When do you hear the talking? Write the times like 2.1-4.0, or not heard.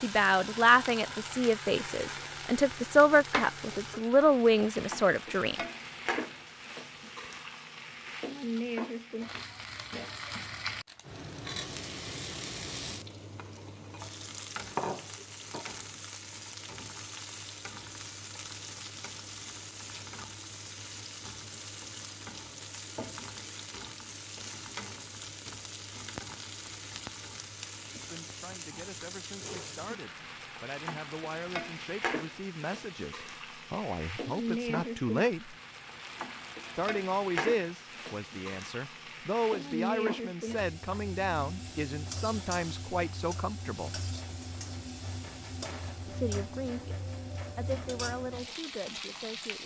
0.0-5.5, 27.9-35.5, 36.8-44.0, 46.0-47.0, 47.5-49.6.